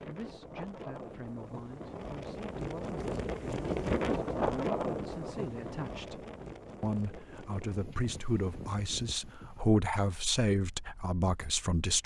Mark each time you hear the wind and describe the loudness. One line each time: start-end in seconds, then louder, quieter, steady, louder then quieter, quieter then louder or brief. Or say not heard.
0.0-12.0 louder then quieter.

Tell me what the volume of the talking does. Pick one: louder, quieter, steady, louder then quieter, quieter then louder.
louder.